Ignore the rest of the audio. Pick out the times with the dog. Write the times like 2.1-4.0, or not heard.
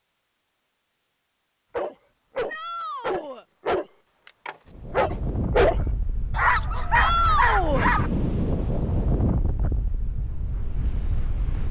1.8-8.1.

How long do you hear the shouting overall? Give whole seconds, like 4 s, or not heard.
2 s.